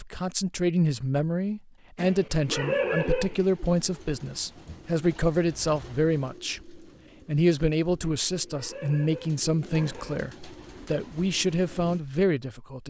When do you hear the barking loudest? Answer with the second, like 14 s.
3 s.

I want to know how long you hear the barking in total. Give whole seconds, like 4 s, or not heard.
4 s.